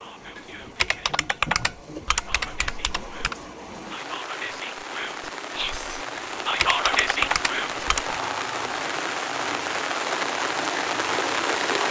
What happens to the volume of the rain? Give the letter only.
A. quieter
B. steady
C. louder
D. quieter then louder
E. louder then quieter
C.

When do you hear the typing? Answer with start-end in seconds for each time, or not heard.
0.3-3.4, 6.2-8.2.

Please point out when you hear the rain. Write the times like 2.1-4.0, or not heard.
0.0-11.8.